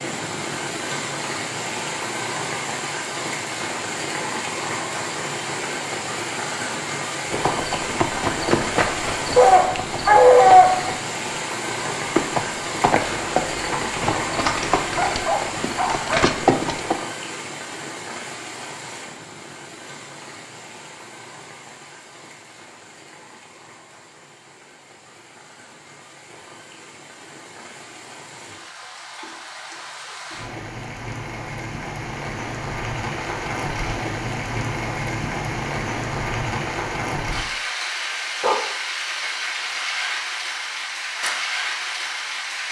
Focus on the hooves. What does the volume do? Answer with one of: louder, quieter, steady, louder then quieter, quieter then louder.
quieter then louder.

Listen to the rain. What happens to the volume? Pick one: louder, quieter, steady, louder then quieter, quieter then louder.
quieter then louder.